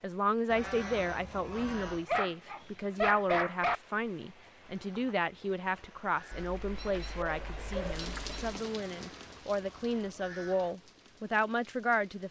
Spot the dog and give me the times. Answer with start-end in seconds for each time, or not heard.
2.0-3.8, 6.3-8.6.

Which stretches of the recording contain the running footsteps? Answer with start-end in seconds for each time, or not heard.
not heard.